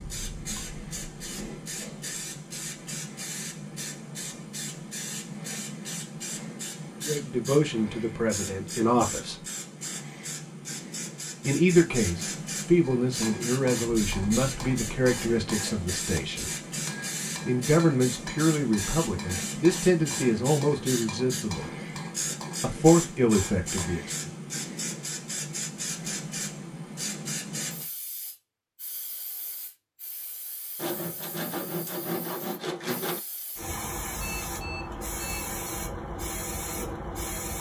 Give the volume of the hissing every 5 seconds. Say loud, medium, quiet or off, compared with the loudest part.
loud, loud, loud, loud, loud, loud, medium, loud.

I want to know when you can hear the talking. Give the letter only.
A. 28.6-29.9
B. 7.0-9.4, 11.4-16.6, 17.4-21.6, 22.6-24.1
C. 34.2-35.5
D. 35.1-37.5
B.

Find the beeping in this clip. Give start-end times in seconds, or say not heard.
34.2-35.5.